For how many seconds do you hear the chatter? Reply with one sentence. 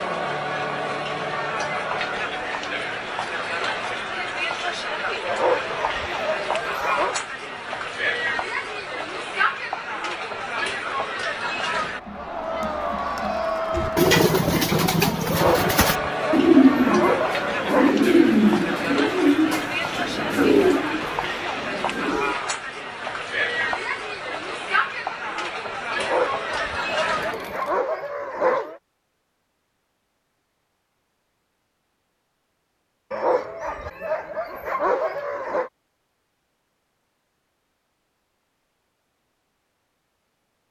You can hear the chatter for 28 seconds altogether.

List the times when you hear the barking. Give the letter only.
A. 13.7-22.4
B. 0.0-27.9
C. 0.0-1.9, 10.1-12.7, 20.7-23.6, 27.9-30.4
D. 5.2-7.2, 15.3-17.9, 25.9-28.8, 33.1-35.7
D.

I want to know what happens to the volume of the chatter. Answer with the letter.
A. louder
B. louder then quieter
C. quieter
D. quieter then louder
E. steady
E.